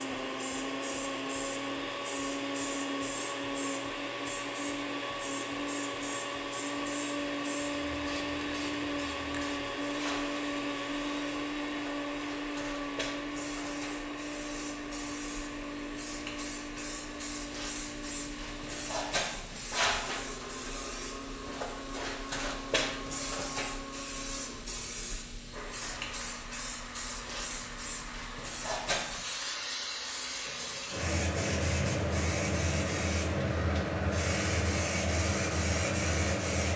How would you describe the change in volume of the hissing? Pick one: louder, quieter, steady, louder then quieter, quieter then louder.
louder.